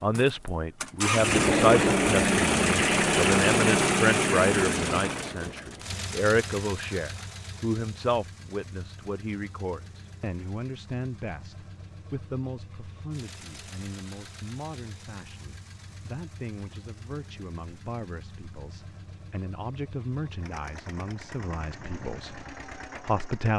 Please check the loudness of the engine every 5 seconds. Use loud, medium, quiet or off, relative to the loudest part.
loud, quiet, quiet, quiet, quiet.